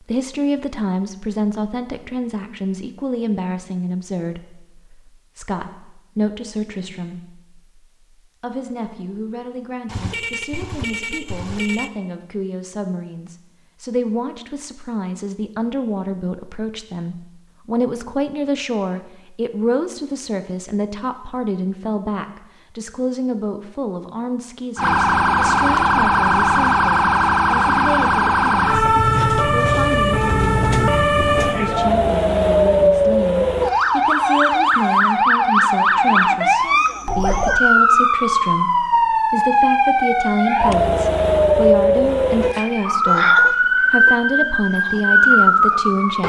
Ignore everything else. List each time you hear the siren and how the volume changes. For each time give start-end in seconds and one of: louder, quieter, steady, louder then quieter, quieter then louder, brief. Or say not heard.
24.8-46.2 steady.